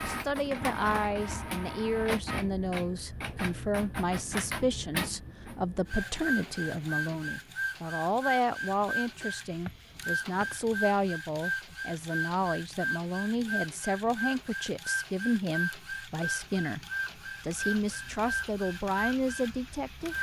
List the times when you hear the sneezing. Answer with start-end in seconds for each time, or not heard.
not heard.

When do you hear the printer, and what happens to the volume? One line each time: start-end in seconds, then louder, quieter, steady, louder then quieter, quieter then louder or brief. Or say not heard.
0.0-20.1 steady.